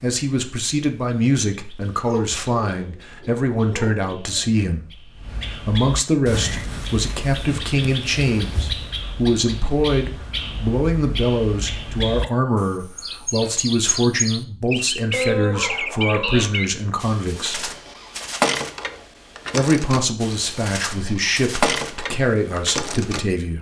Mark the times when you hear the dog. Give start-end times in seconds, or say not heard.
2.0-4.7, 15.1-16.5.